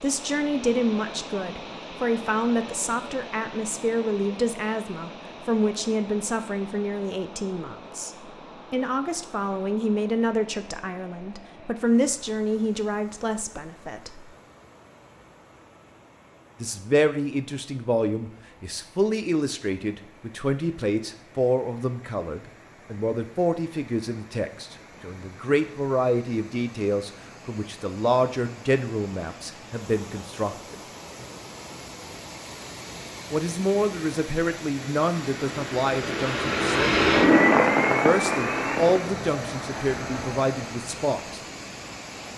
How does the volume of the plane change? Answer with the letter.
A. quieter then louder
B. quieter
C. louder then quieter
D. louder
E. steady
C.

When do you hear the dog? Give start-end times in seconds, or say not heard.
not heard.